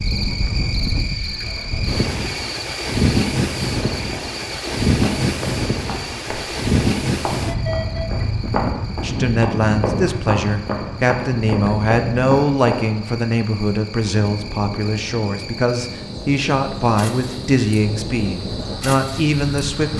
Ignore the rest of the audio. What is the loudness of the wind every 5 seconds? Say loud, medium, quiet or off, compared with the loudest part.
loud, loud, medium, medium.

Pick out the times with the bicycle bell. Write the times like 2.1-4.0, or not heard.
not heard.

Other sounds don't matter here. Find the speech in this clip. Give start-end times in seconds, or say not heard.
9.0-19.9.